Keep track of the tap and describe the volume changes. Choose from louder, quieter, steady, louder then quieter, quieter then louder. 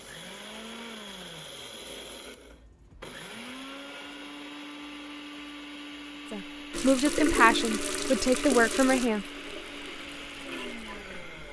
quieter.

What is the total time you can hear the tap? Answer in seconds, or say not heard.
5 s.